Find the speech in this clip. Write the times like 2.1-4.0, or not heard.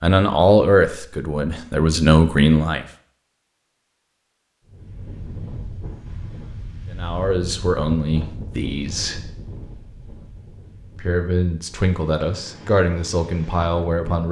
0.0-2.9, 6.9-9.2, 10.9-14.2.